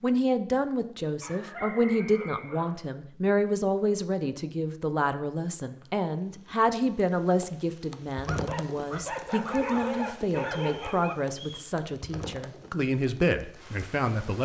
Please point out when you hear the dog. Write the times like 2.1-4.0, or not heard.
1.2-2.8, 8.2-11.2.